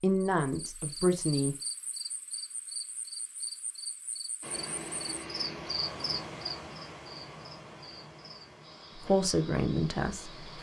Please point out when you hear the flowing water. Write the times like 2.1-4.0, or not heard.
4.4-10.5.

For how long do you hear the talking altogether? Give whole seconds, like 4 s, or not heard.
3 s.